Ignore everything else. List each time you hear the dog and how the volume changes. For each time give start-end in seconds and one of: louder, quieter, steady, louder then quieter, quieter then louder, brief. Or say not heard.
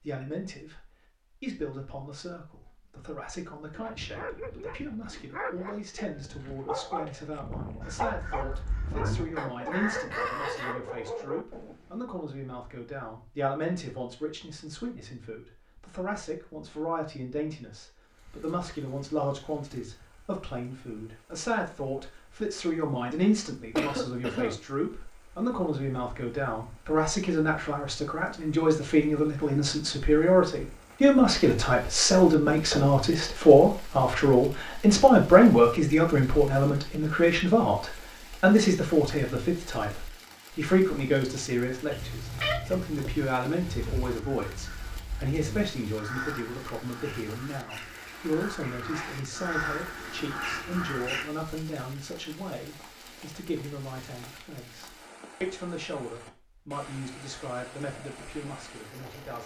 3.7-12.0 steady.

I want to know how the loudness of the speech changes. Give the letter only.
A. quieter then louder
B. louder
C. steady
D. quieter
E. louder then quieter
E.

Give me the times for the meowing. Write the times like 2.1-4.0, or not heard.
41.9-43.3.